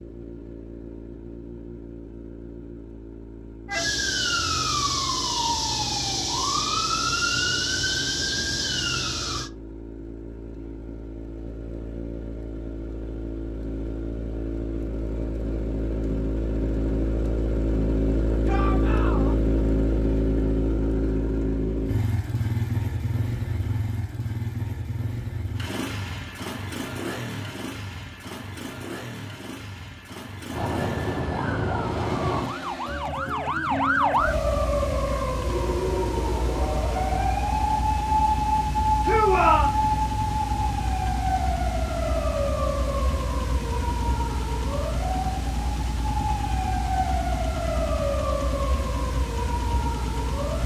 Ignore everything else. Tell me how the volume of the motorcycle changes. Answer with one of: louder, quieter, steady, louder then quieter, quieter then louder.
louder then quieter.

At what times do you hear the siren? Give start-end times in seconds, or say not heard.
3.6-9.5, 30.5-50.6.